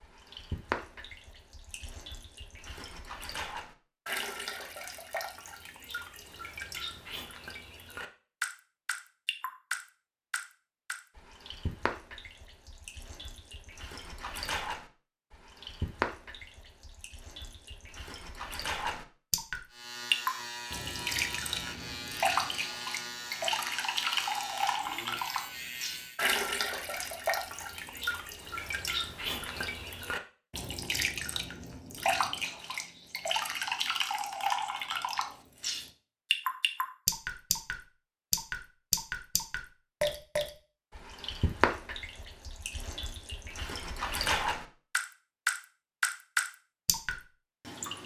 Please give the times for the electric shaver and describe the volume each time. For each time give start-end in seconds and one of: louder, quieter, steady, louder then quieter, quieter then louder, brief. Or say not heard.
19.7-26.2 steady.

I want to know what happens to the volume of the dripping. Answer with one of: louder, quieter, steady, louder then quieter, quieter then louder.
louder.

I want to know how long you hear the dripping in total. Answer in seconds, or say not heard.
48 s.